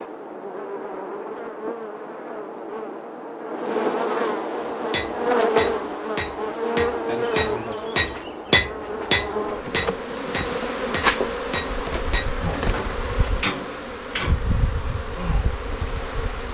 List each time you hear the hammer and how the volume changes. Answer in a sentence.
The hammer can be heard from 4.9 to 14.4 s, getting louder then quieter.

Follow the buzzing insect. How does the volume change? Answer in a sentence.
The loudness of the buzzing insect goes up, then down.